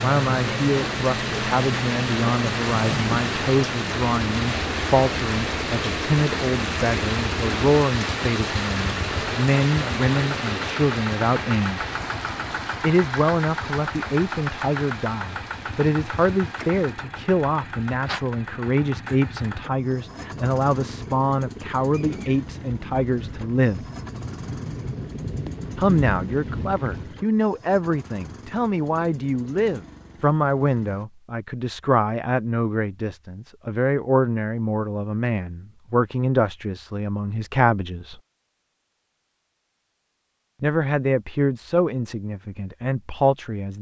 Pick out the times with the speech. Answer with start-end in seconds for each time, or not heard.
0.0-11.8, 12.8-23.9, 25.8-38.2, 40.6-43.7.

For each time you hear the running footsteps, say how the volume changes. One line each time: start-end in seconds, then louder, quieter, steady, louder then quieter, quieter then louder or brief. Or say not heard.
not heard.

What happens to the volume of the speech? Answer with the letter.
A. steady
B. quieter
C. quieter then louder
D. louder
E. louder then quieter
A.